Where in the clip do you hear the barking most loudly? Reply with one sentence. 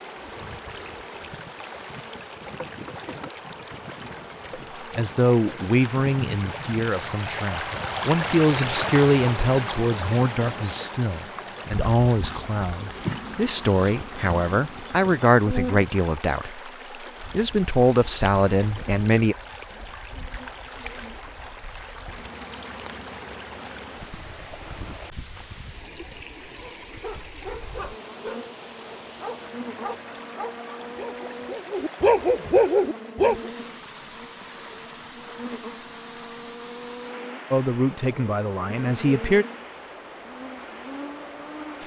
The volume of the barking peaks at 33 seconds.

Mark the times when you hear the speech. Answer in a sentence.
The speech can be heard from 5.0 to 16.7 s, from 17.3 to 19.4 s and from 37.5 to 39.5 s.